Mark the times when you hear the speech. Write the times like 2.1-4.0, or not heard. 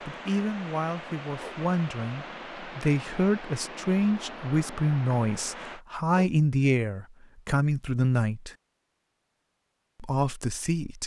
0.1-8.6, 10.0-11.0.